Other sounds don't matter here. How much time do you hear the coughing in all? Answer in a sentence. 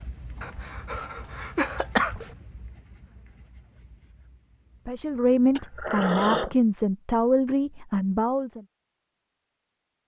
The coughing can be heard for 3 seconds in total.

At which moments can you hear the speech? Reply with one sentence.
You can hear the speech from 4.8 to 8.6 s.